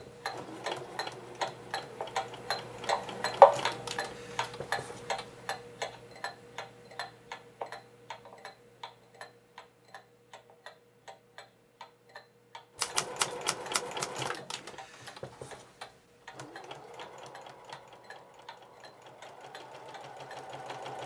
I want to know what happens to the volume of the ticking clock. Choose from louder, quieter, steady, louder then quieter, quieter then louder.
quieter.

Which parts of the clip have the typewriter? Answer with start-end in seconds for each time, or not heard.
12.8-14.3.